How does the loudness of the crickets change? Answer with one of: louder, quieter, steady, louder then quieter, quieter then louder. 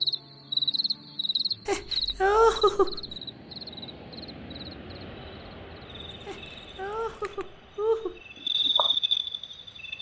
quieter then louder.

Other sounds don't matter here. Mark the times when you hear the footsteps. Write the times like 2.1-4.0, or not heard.
not heard.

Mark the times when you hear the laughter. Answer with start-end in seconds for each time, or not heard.
1.6-3.0, 6.2-8.2.